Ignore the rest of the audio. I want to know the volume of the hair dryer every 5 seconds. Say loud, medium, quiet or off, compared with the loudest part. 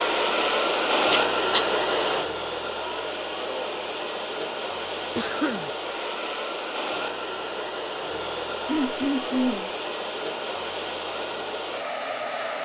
loud, medium, medium.